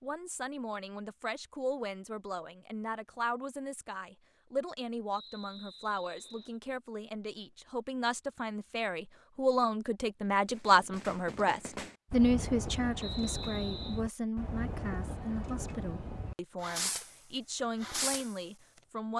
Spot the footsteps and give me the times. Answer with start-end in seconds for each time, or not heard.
not heard.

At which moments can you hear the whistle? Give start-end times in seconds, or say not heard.
5.1-6.6, 13.0-14.0.